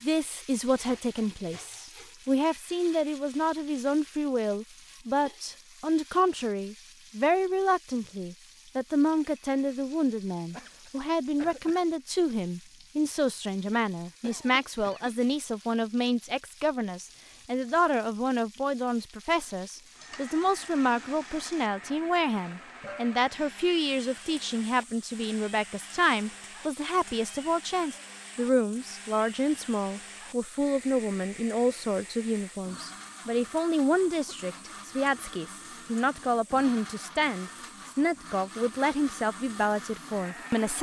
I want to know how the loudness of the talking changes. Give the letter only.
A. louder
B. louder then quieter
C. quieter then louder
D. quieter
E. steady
E.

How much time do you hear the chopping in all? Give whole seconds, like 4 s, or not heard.
not heard.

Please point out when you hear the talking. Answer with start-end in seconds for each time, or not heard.
0.0-40.7.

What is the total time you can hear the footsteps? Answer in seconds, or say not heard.
not heard.